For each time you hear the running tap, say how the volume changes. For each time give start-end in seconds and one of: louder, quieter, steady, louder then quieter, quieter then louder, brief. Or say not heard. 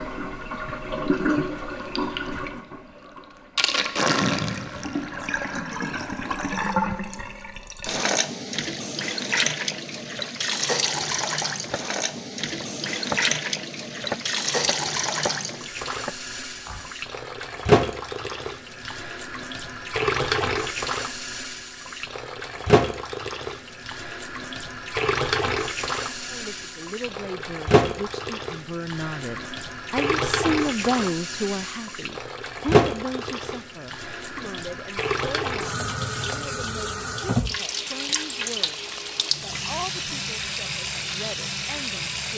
0.0-42.3 steady.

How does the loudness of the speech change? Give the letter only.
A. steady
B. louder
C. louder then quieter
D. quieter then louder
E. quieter
C.